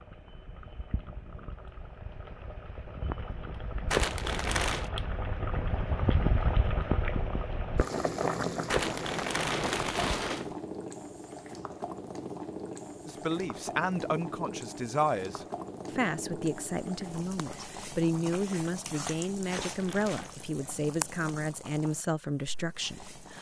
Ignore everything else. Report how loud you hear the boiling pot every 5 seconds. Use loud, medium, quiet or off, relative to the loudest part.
medium, loud, medium, medium, medium.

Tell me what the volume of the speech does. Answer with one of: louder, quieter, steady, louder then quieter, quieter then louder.
steady.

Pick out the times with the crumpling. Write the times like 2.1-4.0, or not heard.
3.9-4.9, 8.7-10.6, 19.5-20.4.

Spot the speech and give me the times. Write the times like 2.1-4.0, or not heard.
13.1-23.3.